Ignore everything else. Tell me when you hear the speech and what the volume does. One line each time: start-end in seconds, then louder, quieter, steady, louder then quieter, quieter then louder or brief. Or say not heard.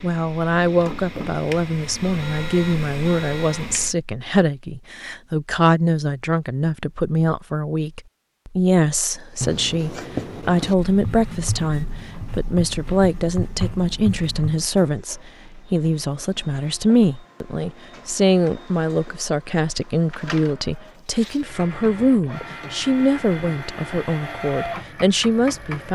0.0-25.9 steady.